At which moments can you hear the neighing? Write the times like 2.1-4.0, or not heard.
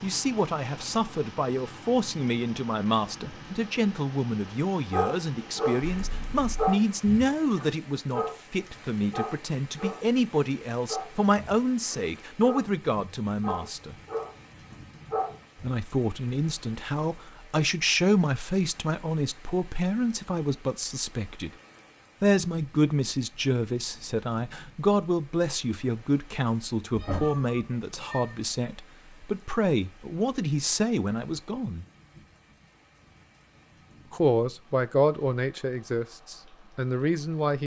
not heard.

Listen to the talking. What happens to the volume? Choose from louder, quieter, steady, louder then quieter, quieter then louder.
steady.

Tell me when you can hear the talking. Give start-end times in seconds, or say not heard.
0.0-13.9, 15.6-21.5, 22.2-31.9, 34.1-37.6.